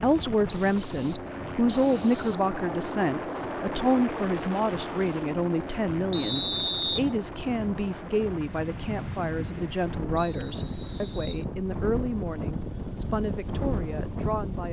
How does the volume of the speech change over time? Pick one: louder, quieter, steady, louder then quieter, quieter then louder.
quieter.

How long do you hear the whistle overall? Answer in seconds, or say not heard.
4 s.